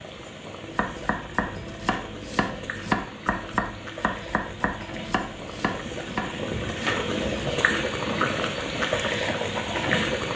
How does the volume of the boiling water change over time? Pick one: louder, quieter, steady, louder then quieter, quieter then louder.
louder.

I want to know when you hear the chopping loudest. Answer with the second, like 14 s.
3 s.